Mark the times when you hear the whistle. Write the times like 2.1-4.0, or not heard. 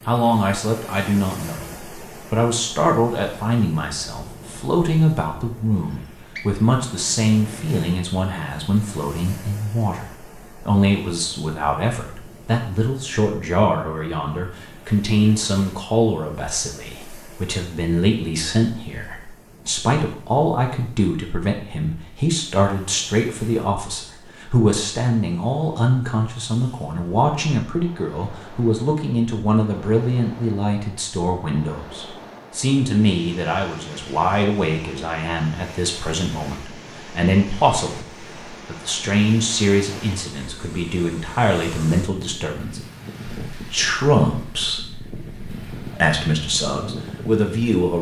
5.8-6.5.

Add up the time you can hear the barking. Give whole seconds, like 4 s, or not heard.
not heard.